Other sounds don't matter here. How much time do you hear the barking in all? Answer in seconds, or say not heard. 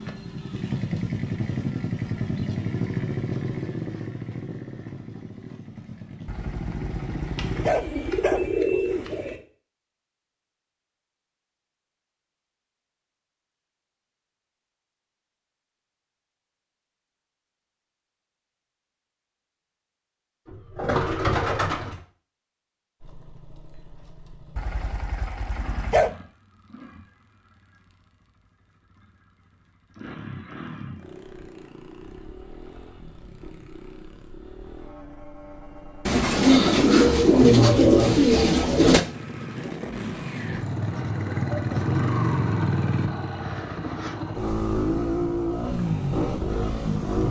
4 s.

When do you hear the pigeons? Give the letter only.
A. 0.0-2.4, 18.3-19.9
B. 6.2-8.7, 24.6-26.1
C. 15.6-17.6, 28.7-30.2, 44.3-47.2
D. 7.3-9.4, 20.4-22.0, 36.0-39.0
D.